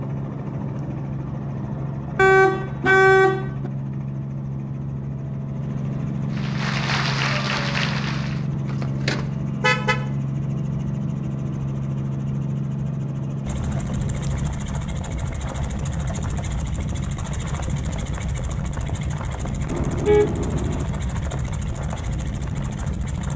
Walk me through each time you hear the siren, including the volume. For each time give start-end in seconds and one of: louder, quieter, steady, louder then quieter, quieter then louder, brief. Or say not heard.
not heard.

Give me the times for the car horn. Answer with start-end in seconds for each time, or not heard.
2.1-3.7, 8.7-10.1, 19.7-20.9.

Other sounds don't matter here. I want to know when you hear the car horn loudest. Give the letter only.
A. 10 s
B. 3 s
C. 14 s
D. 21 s
B.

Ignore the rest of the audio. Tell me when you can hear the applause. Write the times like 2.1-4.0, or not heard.
6.3-8.4.